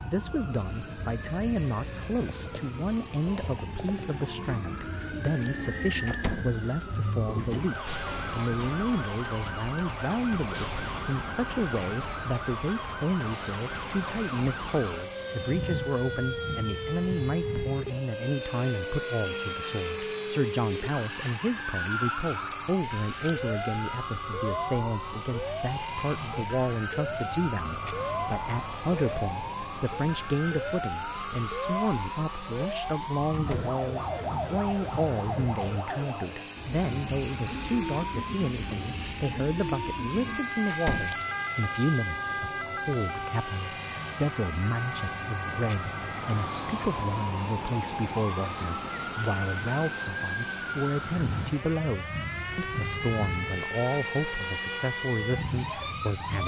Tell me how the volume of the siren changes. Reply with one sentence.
The loudness of the siren stays about the same.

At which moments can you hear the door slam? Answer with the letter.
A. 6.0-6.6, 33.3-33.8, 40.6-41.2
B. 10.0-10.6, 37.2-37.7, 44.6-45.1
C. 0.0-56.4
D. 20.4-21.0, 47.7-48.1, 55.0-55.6
A.